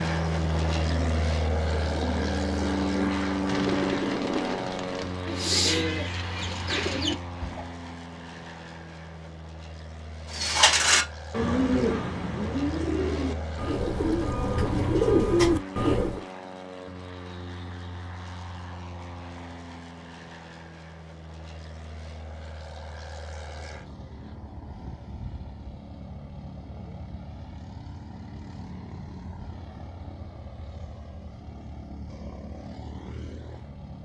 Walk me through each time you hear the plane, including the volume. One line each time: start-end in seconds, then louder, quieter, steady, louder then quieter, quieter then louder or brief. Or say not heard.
0.0-34.0 quieter.